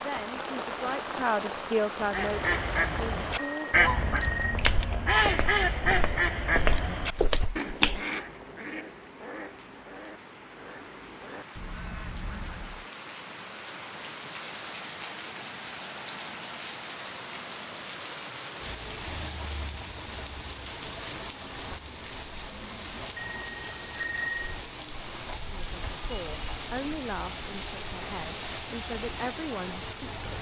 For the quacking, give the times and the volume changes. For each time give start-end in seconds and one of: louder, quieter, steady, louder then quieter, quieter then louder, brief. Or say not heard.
2.0-12.8 quieter.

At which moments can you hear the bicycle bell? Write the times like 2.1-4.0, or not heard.
3.4-4.5, 23.1-24.5.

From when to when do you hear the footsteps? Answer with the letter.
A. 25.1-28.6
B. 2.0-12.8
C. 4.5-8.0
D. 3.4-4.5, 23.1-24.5
C.